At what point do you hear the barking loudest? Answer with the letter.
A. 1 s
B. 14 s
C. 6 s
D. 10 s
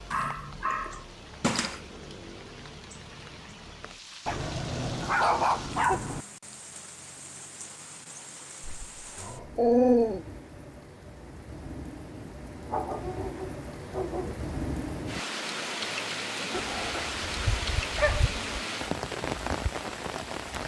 D.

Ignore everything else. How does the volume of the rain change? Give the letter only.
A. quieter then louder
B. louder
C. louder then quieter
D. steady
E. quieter
B.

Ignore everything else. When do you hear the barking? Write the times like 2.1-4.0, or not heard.
0.1-1.8, 4.2-6.2, 8.6-10.2, 12.7-14.5, 16.5-18.6.